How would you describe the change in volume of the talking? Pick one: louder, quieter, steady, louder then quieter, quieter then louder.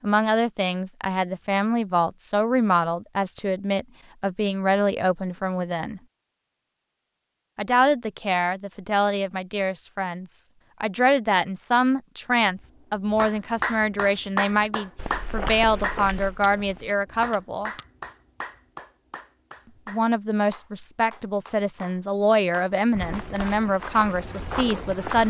steady.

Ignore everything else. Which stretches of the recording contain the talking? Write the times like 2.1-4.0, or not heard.
0.0-6.0, 7.5-17.7, 19.9-25.2.